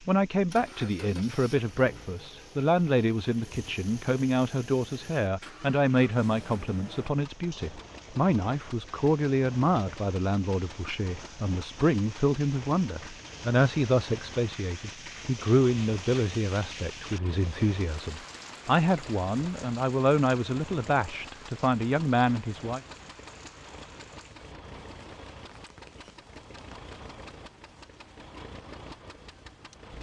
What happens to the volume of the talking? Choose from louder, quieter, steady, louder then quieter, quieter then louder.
steady.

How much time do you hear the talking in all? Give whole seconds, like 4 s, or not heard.
23 s.